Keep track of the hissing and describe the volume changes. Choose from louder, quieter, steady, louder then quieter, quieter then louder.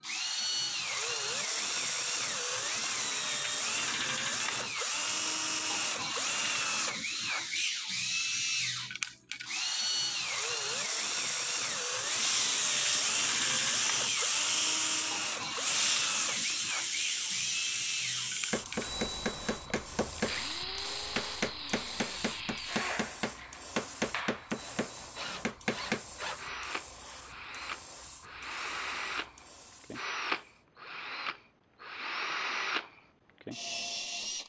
quieter.